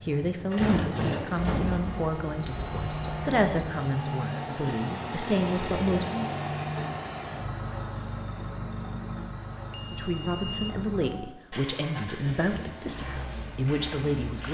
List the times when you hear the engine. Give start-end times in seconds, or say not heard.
0.0-14.4.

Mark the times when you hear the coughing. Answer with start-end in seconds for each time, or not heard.
0.6-1.7.